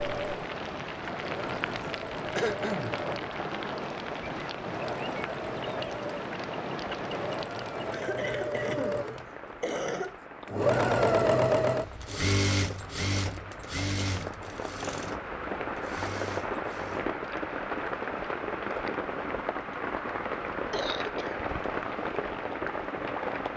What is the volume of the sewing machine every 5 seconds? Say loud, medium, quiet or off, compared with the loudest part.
medium, medium, loud, quiet, off.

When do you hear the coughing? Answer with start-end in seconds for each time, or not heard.
1.8-3.0, 7.9-10.2, 20.7-21.4.